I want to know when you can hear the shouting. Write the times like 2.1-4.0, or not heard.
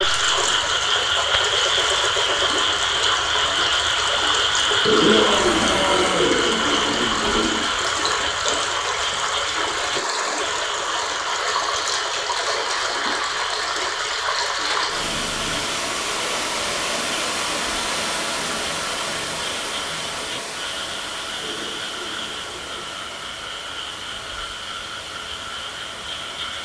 5.0-6.3.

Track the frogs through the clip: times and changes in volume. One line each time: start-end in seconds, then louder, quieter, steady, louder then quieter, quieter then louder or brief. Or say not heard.
0.0-26.6 quieter.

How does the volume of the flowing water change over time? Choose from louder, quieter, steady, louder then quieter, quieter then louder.
quieter.